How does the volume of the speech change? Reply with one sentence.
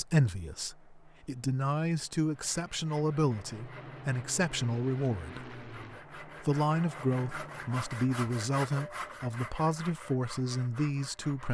The loudness of the speech stays about the same.